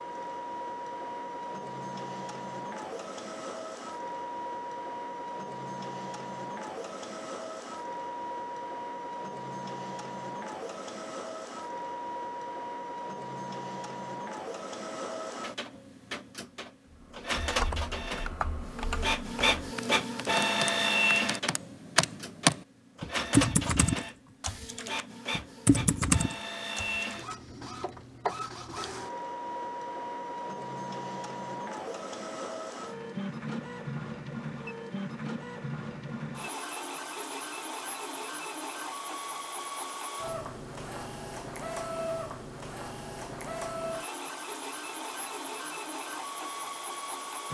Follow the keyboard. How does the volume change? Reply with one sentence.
The loudness of the keyboard goes up.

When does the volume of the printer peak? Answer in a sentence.
The volume of the printer peaks at 21 seconds.